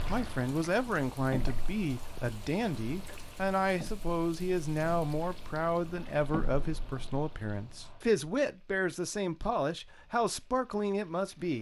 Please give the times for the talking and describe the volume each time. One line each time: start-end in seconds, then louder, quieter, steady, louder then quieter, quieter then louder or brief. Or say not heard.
0.1-11.5 steady.